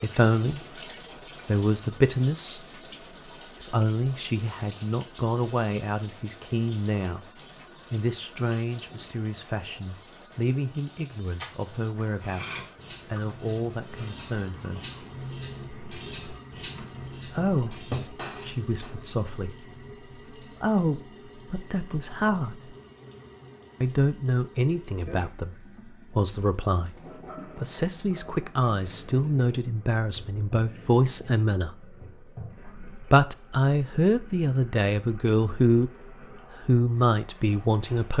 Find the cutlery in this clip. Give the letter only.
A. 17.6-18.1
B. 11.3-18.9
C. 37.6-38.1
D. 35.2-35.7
B.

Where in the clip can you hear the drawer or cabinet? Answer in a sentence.
The drawer or cabinet can be heard from 17.6 to 18.1 s.